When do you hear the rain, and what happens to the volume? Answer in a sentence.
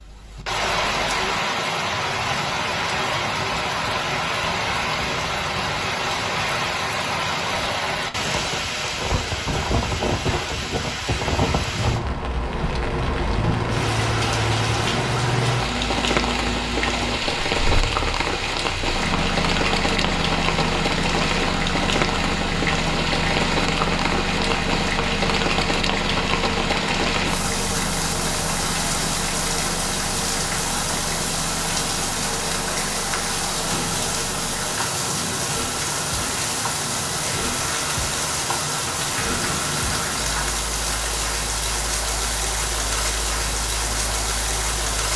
You can hear the rain from 0.0 to 45.1 s, at a steady volume.